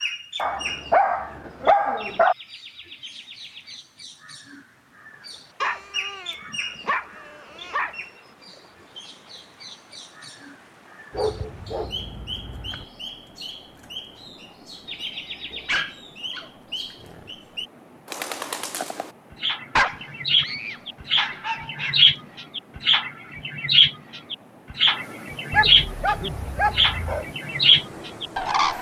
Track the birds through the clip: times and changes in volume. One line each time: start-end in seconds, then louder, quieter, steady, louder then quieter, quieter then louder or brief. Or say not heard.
0.0-28.7 louder.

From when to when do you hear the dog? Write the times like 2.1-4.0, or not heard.
0.3-2.4, 5.6-8.0, 11.1-12.8, 15.7-16.5, 19.8-22.1, 25.5-27.2.